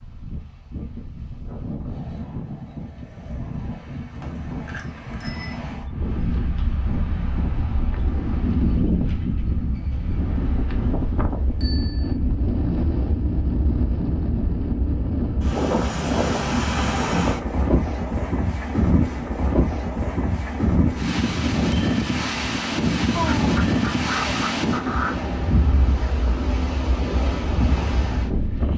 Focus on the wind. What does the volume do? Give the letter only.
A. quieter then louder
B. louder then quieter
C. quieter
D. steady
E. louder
E.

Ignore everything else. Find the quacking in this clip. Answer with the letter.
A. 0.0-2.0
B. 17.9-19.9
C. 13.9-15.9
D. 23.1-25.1
D.